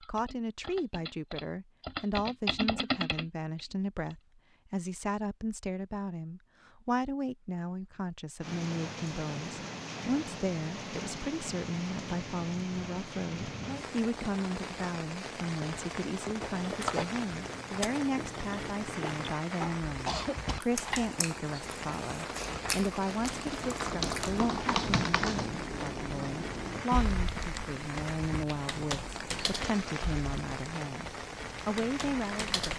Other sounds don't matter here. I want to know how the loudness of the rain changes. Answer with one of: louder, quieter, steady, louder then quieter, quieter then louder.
steady.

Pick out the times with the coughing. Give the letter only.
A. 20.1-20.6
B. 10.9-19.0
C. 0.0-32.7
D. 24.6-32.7
A.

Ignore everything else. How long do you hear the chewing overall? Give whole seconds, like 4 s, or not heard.
8 s.